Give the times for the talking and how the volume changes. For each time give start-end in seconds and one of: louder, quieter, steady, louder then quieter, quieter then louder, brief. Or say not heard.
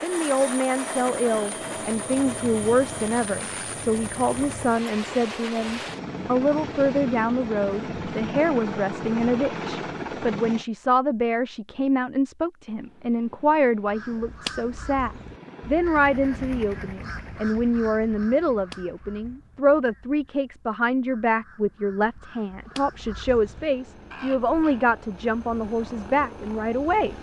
0.0-27.1 steady.